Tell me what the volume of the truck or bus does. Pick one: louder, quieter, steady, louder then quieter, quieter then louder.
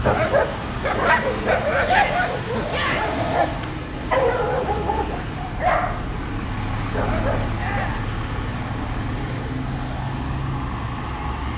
steady.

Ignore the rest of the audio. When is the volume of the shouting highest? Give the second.
3 s.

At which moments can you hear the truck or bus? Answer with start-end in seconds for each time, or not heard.
0.0-11.5.